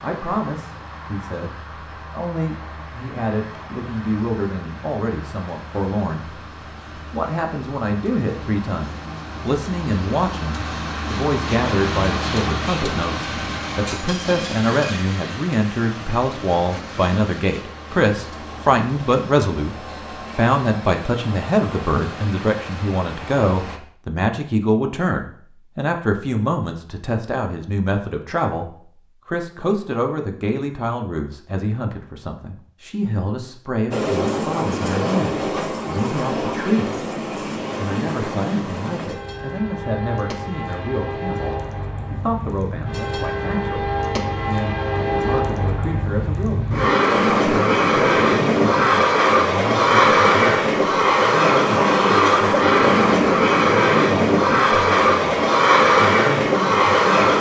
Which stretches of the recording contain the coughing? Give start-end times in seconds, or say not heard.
not heard.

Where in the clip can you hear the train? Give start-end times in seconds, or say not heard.
0.0-23.8, 33.9-57.3.